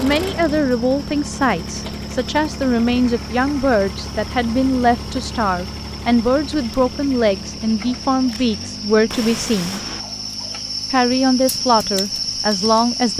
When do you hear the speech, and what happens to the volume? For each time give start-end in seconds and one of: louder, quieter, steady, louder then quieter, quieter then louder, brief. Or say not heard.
0.0-9.8 steady
10.9-13.1 brief.